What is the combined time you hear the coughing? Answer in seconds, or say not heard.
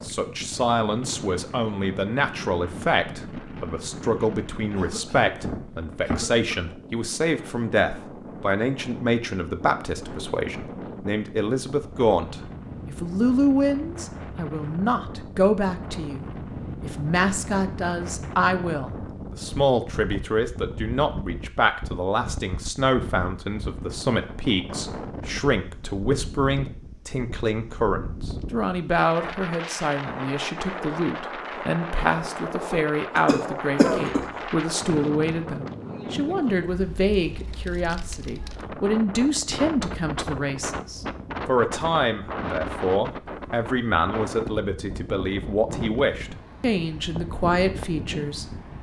3 s.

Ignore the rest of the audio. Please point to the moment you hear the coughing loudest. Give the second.
34 s.